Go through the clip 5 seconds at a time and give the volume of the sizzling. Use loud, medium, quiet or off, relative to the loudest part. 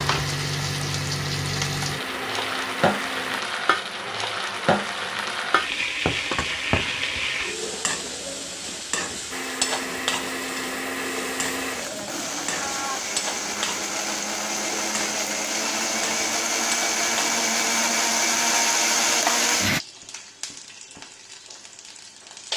loud, loud, medium, medium, medium.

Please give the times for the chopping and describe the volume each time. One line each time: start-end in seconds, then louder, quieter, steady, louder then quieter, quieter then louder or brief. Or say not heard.
not heard.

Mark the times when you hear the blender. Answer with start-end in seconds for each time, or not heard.
0.0-3.4, 9.3-19.8.